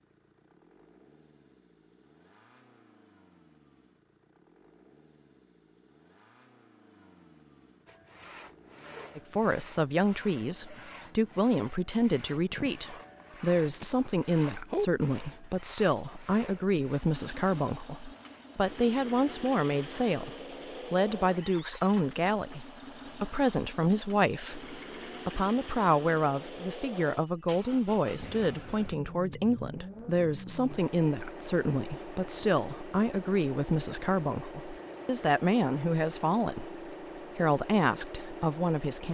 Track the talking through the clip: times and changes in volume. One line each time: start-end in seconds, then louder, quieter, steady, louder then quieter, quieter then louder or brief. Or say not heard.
9.2-39.0 steady.